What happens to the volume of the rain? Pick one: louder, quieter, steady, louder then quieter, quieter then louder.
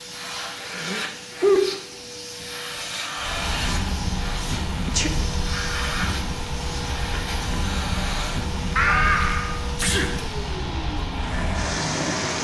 steady.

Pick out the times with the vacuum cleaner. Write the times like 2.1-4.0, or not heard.
0.0-12.3.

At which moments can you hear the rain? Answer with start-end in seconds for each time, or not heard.
3.1-12.3.